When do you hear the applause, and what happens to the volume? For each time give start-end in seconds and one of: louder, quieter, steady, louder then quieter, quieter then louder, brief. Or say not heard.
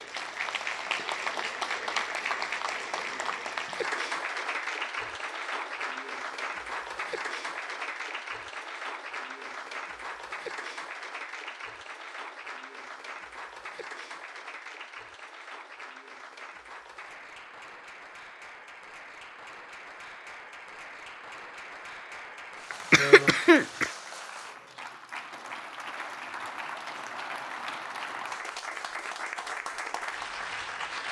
0.0-31.0 quieter then louder.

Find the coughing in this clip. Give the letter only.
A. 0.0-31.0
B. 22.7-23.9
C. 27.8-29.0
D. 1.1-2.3
B.